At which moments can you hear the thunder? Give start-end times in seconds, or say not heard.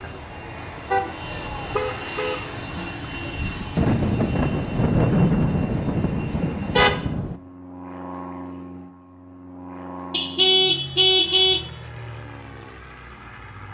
3.8-7.4.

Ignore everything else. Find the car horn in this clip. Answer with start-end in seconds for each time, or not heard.
0.9-2.9, 6.3-7.0, 10.1-11.7.